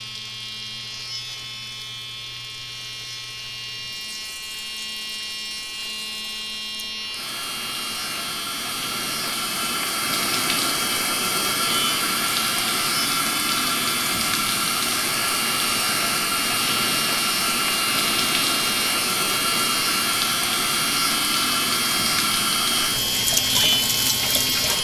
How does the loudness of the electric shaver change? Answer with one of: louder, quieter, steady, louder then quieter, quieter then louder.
louder.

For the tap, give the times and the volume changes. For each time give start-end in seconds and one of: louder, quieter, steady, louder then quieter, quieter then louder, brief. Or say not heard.
0.0-24.7 louder.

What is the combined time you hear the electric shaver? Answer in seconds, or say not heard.
25 s.